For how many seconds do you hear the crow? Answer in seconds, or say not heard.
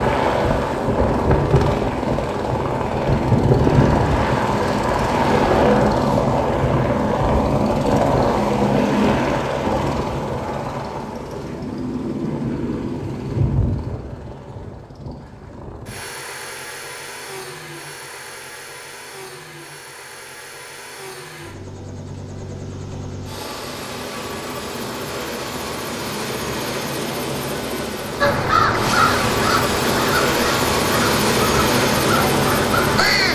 5 s.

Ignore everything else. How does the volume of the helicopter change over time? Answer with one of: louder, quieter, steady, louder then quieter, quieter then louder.
quieter then louder.